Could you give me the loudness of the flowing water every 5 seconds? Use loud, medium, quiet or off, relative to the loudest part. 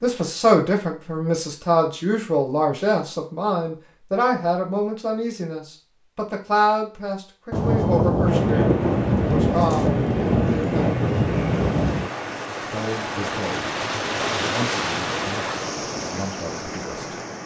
off, medium, loud, loud.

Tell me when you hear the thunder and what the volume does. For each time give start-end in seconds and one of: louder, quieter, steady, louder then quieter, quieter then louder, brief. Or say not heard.
7.5-12.2 steady.